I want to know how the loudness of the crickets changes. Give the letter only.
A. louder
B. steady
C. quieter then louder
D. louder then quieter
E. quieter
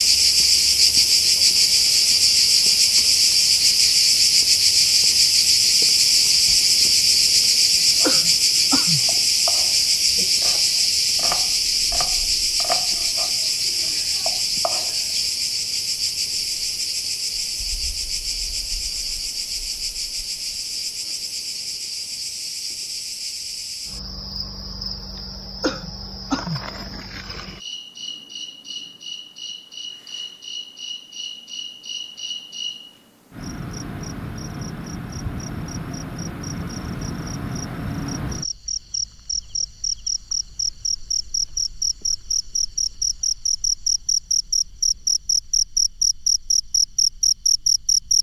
C.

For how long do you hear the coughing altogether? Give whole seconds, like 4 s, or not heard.
2 s.